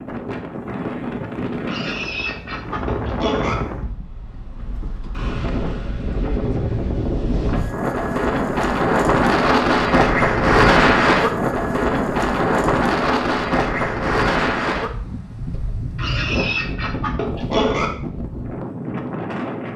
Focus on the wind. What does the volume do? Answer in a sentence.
The volume of the wind goes up, then down.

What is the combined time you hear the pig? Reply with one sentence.
The pig can be heard for 4 seconds in total.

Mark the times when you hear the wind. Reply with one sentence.
The wind can be heard from 0.0 to 19.7 s.